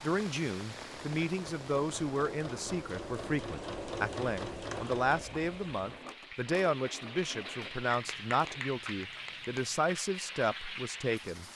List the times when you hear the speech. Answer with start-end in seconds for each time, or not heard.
0.0-11.4.